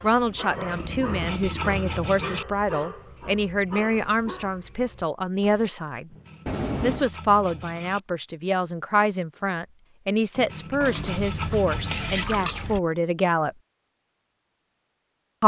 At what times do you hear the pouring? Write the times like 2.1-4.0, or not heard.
0.8-1.8, 6.5-7.1, 10.8-12.8.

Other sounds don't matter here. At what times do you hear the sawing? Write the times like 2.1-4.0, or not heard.
0.5-2.5, 6.1-8.0, 10.3-12.2.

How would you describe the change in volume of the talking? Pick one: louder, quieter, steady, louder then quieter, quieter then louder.
steady.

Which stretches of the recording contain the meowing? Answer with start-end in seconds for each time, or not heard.
not heard.